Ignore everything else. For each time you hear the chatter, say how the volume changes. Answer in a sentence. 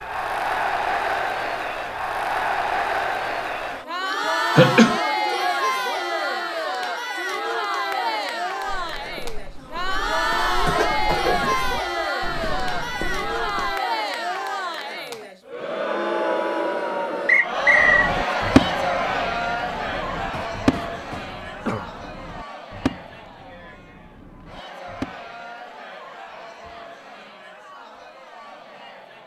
The chatter can be heard from 0.0 to 29.2 s, getting quieter.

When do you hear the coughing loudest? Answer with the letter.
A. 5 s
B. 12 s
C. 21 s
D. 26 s
A.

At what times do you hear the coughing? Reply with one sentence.
You can hear the coughing from 4.5 to 5.0 s, from 10.7 to 12.1 s and from 20.3 to 21.9 s.